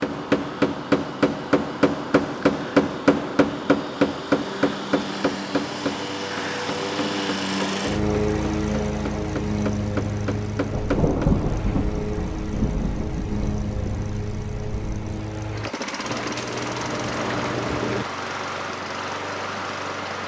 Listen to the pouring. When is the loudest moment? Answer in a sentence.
The volume of the pouring peaks at 18 seconds.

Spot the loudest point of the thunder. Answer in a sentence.
The volume of the thunder peaks at 11 seconds.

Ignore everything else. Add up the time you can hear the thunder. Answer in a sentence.
You can hear the thunder for 4 seconds altogether.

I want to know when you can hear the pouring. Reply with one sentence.
You can hear the pouring from 16.0 to 18.1 s.